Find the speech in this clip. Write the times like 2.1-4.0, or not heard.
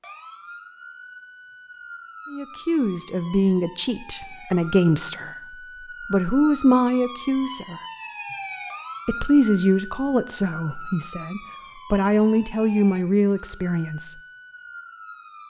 2.3-5.3, 6.1-7.8, 9.1-14.2.